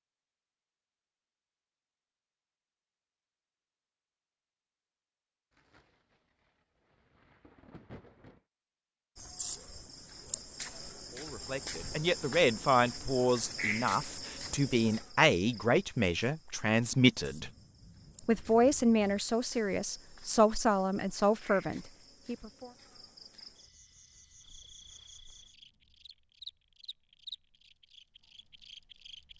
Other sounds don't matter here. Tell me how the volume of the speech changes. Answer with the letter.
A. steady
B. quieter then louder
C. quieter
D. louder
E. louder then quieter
A.